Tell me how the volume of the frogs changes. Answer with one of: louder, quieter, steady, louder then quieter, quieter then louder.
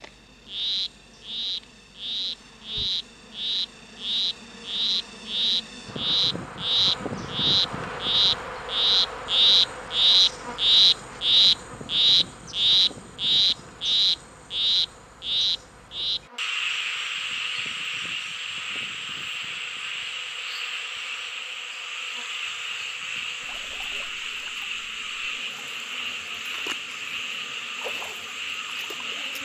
louder then quieter.